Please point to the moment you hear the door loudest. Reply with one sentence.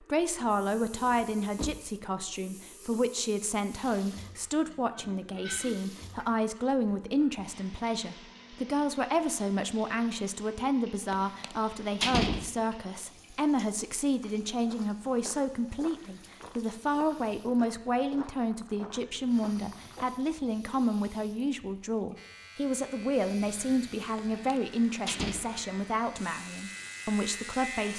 The loudest moment of the door is at 12 seconds.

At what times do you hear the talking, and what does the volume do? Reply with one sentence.
The talking can be heard from 0.0 to 27.9 s, at a steady volume.